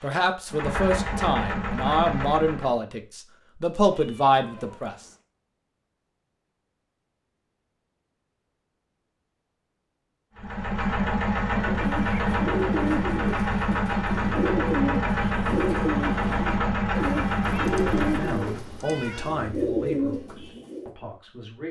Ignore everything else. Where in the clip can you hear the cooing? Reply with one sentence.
You can hear the cooing from 11.6 to 20.9 s.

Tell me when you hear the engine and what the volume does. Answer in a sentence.
You can hear the engine briefly from 0.0 to 2.8 s; and from 10.3 to 18.6 s, at a steady volume.